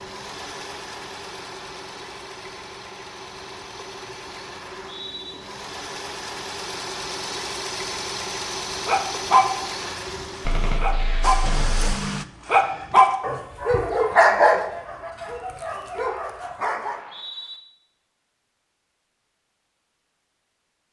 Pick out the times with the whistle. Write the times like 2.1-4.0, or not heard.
4.6-5.3, 16.8-17.6.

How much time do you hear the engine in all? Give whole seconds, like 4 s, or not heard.
12 s.